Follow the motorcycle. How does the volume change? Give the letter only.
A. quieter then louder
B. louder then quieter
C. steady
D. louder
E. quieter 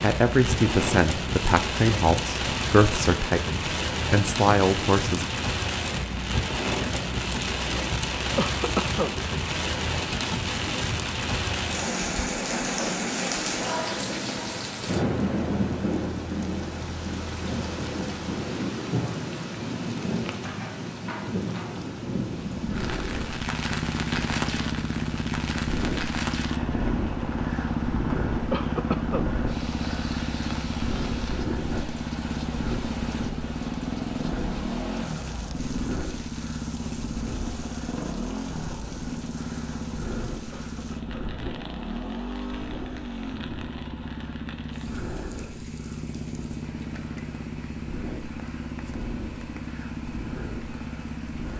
E.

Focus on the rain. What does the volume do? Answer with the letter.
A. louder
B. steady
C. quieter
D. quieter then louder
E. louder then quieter
C.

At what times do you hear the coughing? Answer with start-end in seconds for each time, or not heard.
8.3-9.2, 28.5-29.3, 40.5-41.1.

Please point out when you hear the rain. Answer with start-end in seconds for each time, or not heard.
0.0-51.5.